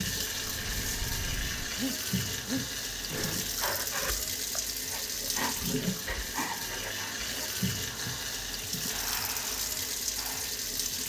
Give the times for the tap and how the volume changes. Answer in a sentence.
The tap can be heard from 0.0 to 11.0 s, at a steady volume.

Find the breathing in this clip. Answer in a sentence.
You can hear the breathing from 0.3 to 10.6 s.